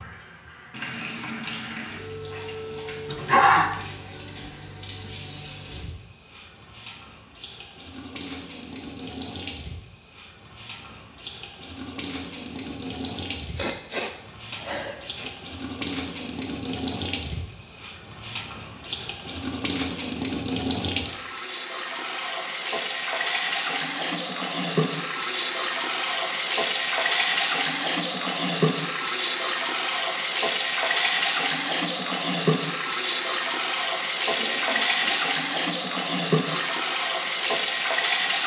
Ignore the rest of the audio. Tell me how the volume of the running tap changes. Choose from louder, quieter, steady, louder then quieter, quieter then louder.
louder.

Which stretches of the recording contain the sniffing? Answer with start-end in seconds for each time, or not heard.
3.1-3.7, 13.3-15.3, 34.3-35.1.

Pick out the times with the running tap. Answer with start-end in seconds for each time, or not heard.
0.0-38.4.